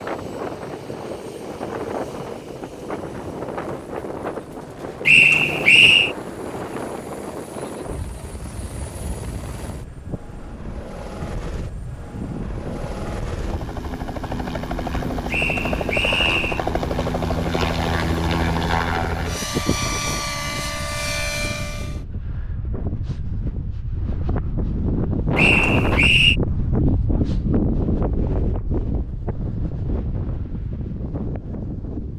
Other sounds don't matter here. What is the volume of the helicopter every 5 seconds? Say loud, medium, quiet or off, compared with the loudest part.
quiet, quiet, medium, loud, loud, off, off.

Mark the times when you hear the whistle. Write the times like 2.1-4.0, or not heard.
5.0-6.2, 15.3-16.6, 25.4-26.4.